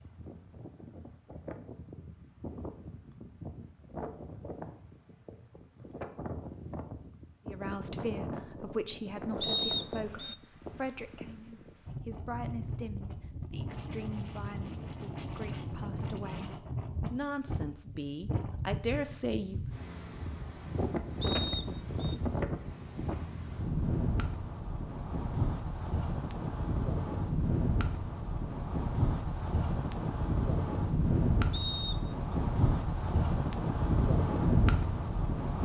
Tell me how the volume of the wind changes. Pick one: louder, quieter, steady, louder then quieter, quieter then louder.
louder.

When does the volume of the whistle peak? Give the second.
10 s.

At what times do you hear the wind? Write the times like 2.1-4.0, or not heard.
0.0-35.6.